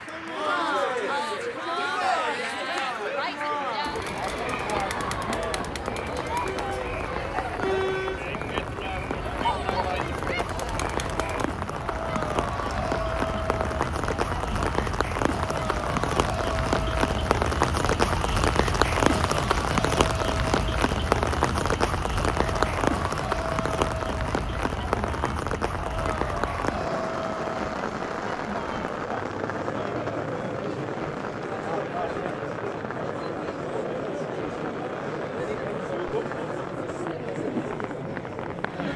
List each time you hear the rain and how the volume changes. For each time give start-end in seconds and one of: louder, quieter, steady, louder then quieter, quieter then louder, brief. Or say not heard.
0.0-38.9 louder then quieter.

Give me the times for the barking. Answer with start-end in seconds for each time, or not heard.
not heard.